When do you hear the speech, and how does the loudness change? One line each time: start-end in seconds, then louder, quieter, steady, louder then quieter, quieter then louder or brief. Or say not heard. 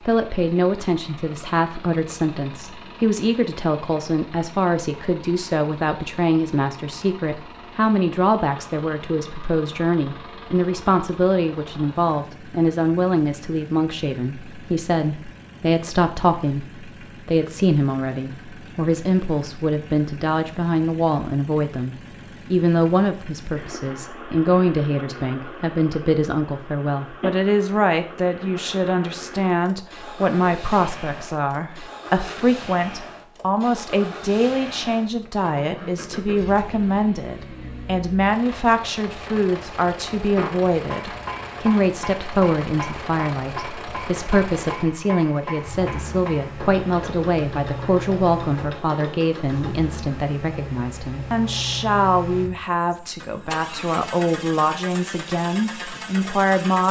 0.1-56.8 steady.